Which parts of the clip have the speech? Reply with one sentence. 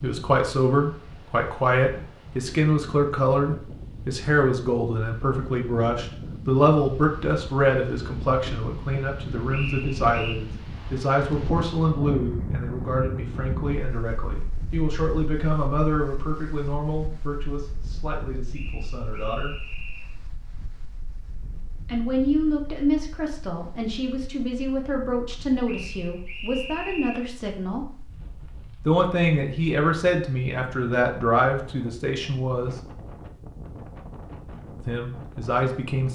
The speech can be heard from 0.0 to 19.6 s, from 21.9 to 27.9 s, from 28.9 to 32.8 s and from 34.9 to 36.1 s.